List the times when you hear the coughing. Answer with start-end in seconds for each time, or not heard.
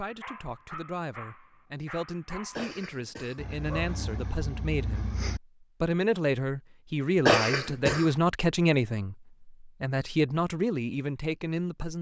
2.5-3.4, 7.2-8.1.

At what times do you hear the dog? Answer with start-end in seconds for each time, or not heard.
0.0-5.4.